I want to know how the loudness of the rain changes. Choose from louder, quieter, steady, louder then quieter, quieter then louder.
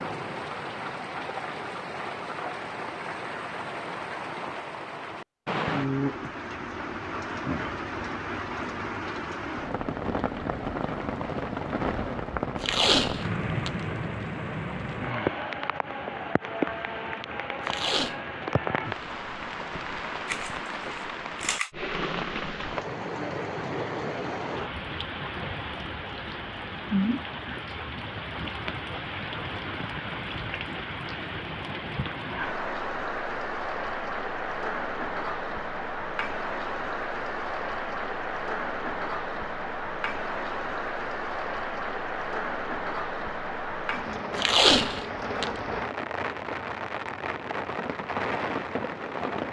steady.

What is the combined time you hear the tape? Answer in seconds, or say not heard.
3 s.